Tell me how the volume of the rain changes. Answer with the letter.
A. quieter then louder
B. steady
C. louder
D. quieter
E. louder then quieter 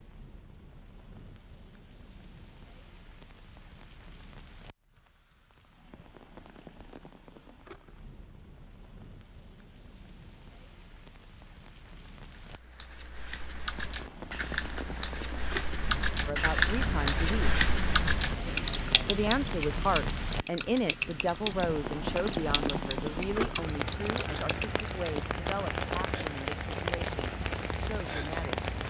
C.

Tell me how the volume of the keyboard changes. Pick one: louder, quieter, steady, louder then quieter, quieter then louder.
louder then quieter.